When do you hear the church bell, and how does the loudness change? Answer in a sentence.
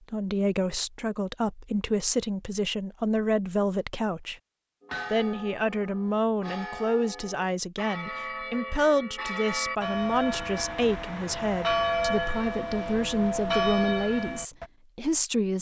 You can hear the church bell from 4.8 to 14.7 s, getting louder.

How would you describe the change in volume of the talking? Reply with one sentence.
The loudness of the talking stays about the same.